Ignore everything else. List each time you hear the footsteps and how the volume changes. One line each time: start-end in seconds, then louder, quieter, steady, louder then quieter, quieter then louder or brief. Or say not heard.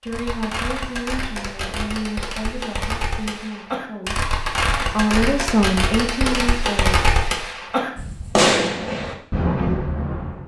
not heard.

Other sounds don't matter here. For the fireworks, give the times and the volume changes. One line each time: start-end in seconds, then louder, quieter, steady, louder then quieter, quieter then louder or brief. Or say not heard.
0.0-10.4 louder.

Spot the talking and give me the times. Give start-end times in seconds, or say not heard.
0.0-7.0.